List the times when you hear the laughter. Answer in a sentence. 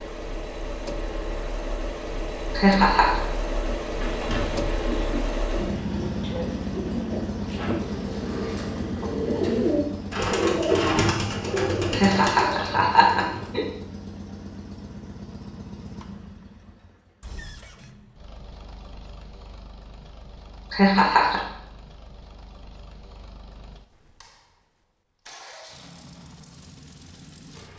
You can hear the laughter from 2.5 to 3.2 s, from 11.9 to 13.7 s and from 20.7 to 21.4 s.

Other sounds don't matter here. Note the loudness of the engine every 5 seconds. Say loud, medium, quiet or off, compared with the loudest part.
loud, loud, medium, quiet, quiet, quiet.